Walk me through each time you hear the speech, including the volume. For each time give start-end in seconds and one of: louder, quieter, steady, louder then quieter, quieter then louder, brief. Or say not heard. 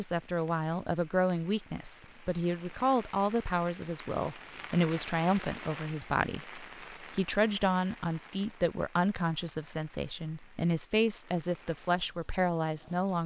0.0-13.2 steady.